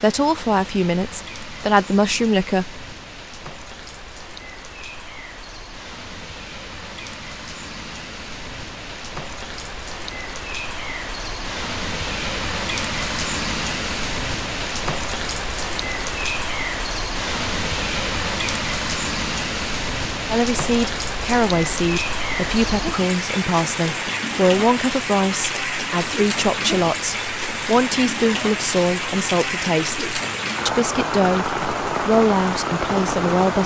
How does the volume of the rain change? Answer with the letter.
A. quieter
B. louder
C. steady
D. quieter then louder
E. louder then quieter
B.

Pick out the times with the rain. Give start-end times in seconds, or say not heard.
0.0-33.6.